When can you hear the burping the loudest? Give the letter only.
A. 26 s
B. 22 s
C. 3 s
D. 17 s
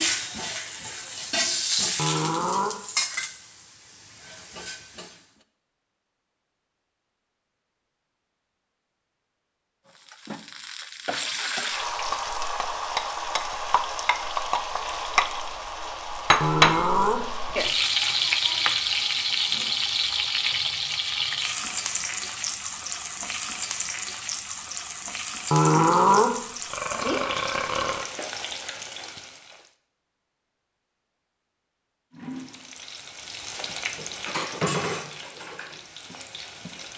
A.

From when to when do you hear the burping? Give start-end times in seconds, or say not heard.
1.9-2.8, 16.4-17.2, 25.5-28.1.